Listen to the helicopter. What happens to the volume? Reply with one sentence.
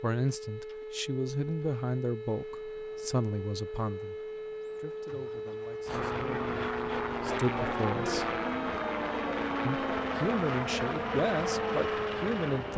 The volume of the helicopter stays about the same.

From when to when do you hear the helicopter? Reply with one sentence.
The helicopter can be heard from 5.8 to 12.7 s.